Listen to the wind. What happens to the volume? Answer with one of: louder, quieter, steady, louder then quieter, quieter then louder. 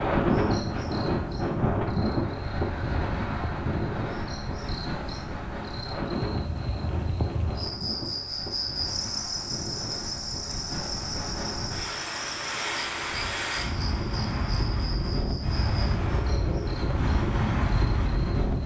quieter then louder.